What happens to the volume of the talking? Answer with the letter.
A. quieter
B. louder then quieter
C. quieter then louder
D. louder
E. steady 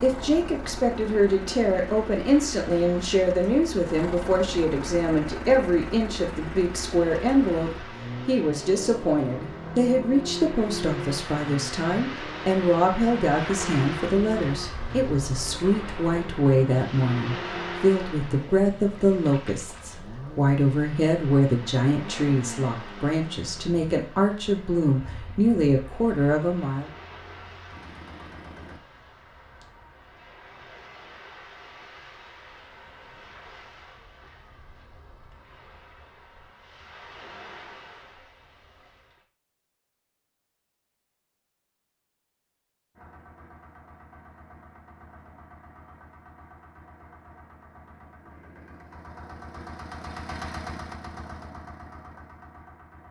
E.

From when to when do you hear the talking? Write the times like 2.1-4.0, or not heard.
0.0-26.9.